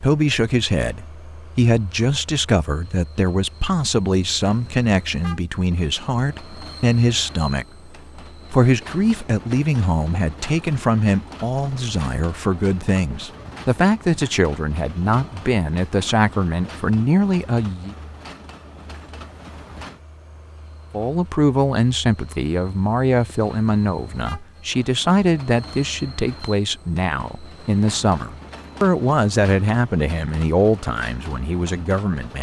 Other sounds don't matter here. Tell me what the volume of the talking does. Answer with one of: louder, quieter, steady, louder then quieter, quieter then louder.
steady.